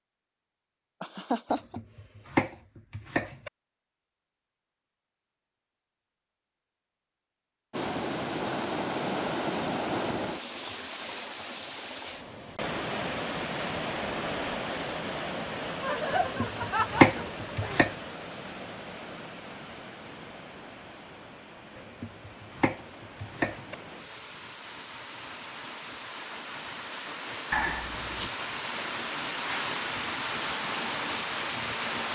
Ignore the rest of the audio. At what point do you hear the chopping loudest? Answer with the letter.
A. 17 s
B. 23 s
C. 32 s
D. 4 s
A.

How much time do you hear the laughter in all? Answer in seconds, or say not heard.
4 s.